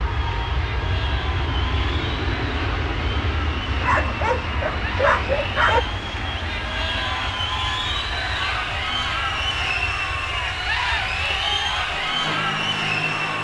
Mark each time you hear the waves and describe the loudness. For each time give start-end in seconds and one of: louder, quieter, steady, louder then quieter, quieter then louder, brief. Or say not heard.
not heard.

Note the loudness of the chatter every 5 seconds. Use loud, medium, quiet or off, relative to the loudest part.
medium, loud, loud.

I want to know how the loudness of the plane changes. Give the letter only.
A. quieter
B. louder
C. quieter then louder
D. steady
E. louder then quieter
A.